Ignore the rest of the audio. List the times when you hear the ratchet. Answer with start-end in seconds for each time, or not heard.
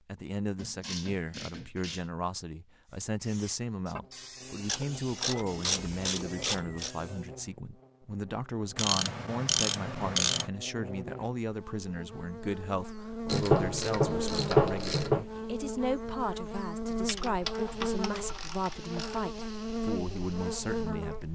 0.6-2.0, 4.7-7.0, 8.8-10.4, 13.2-15.2, 17.1-19.2.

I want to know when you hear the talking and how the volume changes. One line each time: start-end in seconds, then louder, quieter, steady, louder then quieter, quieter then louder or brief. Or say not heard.
0.1-21.2 steady.